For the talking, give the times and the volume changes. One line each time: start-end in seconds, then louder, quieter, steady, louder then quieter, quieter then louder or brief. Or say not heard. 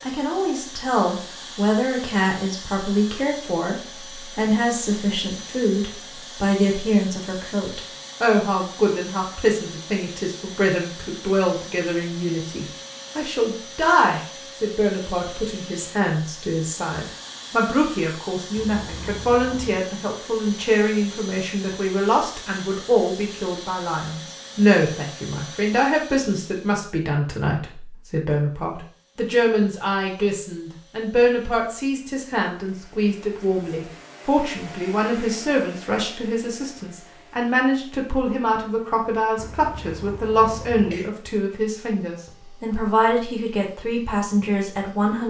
0.0-45.2 steady.